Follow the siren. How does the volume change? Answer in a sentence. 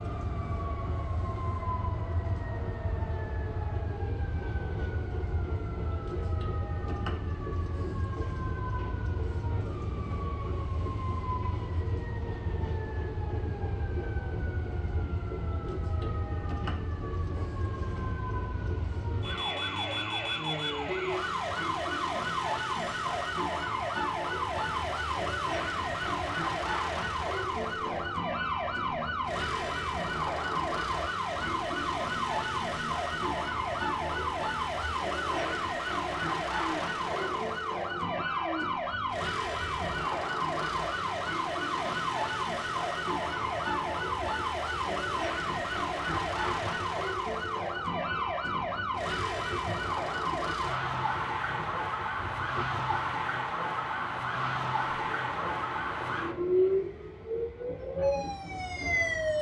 The loudness of the siren goes up.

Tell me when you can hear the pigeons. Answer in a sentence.
The pigeons can't be heard in this clip.